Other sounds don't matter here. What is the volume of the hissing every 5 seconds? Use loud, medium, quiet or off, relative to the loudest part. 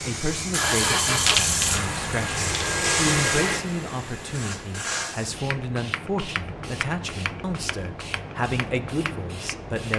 loud, medium.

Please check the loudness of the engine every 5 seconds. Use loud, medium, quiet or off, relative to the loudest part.
loud, off.